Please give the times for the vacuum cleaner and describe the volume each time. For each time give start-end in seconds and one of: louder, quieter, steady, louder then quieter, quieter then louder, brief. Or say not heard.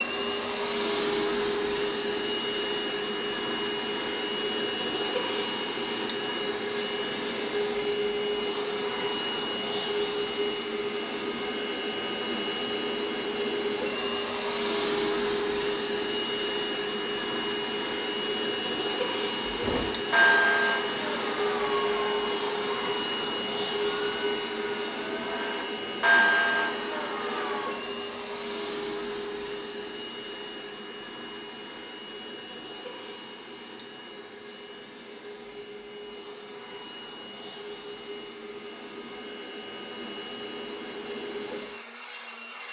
0.0-42.6 quieter.